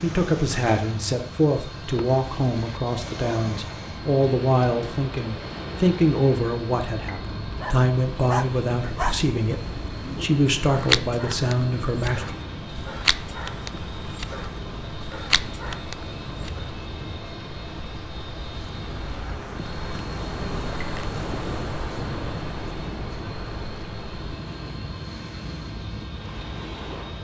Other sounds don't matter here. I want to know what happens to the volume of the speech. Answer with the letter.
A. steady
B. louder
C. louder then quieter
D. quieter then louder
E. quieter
A.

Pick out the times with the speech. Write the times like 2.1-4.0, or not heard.
0.0-12.3.